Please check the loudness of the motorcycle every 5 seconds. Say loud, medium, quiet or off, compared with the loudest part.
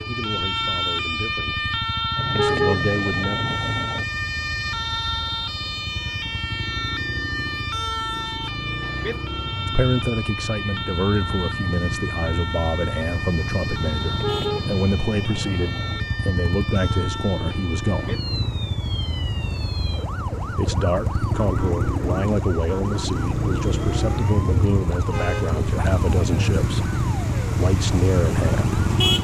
quiet, medium, medium, medium, loud, loud.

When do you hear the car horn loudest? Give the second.
3 s.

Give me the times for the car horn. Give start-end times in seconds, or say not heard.
2.1-4.0, 14.0-16.0, 25.1-25.6.